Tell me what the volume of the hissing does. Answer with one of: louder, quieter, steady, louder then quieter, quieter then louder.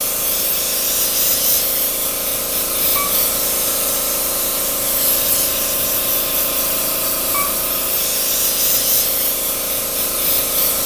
steady.